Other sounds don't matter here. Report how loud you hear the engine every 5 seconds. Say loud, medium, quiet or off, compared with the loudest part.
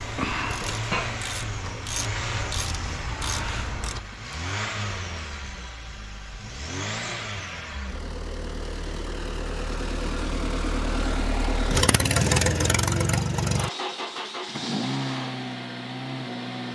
medium, medium, loud, medium.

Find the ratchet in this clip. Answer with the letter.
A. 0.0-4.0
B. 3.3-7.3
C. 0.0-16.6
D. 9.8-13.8
A.